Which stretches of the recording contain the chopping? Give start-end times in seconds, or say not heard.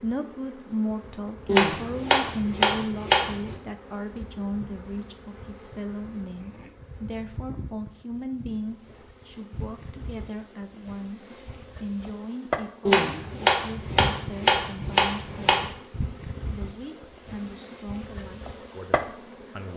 1.4-3.5, 12.8-15.7.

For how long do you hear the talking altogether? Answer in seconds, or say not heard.
20 s.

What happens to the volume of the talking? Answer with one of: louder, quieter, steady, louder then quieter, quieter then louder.
quieter.